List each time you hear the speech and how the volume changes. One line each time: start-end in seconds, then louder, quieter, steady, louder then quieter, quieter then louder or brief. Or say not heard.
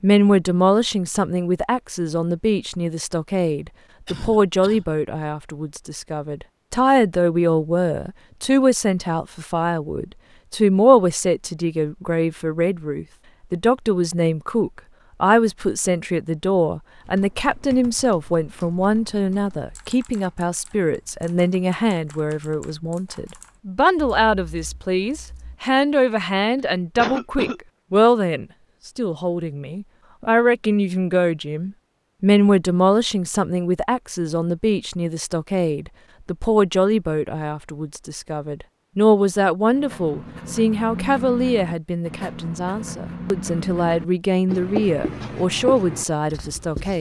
0.0-46.9 steady.